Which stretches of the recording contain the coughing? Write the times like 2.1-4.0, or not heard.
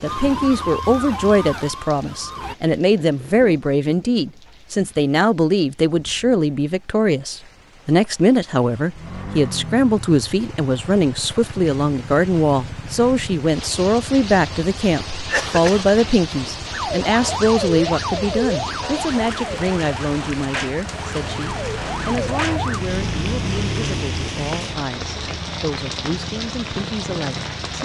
15.2-15.9.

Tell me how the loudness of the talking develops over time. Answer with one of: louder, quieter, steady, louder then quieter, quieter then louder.
quieter.